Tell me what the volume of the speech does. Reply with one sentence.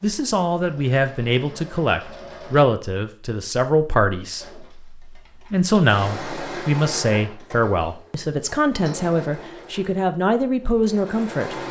The loudness of the speech stays about the same.